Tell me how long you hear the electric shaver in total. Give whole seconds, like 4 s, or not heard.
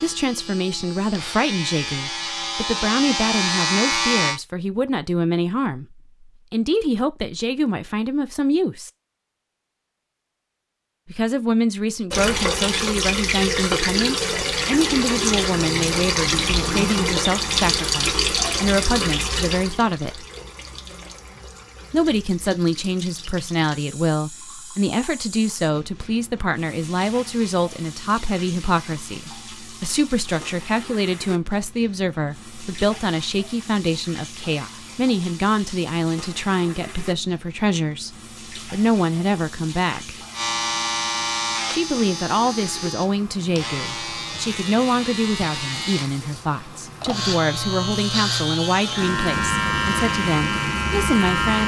16 s.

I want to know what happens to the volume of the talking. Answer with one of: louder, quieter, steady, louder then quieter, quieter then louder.
steady.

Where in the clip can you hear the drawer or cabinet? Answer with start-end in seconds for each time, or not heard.
not heard.